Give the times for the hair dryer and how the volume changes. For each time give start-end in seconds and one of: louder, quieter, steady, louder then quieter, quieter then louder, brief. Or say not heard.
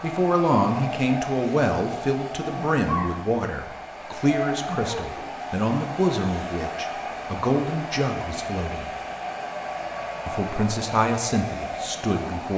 0.0-12.5 steady.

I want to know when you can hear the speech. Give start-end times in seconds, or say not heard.
0.0-8.9, 10.2-12.5.